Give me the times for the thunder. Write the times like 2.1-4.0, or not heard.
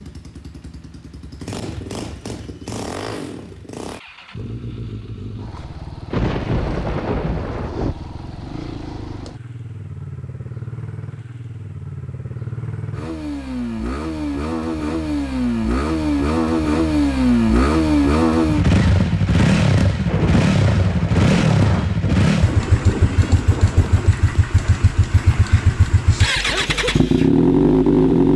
6.1-8.0, 20.1-24.1.